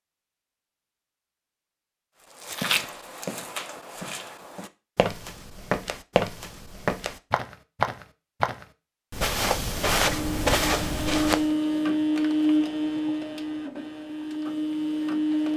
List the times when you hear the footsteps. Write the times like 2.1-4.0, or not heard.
2.4-11.4.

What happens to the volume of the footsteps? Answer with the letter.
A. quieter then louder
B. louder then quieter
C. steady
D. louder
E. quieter
D.